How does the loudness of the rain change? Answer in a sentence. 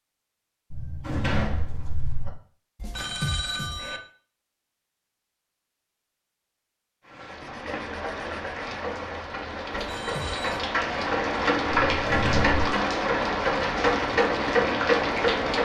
The volume of the rain goes up.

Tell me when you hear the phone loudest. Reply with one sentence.
The volume of the phone peaks at 3 seconds.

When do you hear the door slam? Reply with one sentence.
The door slam can be heard from 0.7 to 2.3 s and from 11.7 to 12.8 s.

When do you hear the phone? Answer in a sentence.
You can hear the phone from 2.8 to 4.0 s and from 9.7 to 10.7 s.